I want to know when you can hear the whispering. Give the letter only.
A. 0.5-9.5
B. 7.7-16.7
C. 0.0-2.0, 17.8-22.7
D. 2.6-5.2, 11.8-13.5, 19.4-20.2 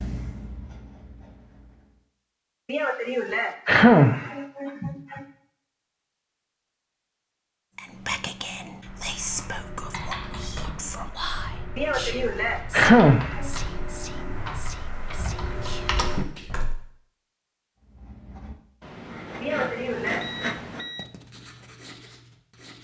B.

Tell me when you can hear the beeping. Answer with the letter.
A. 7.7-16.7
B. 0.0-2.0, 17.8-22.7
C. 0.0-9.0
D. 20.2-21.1
D.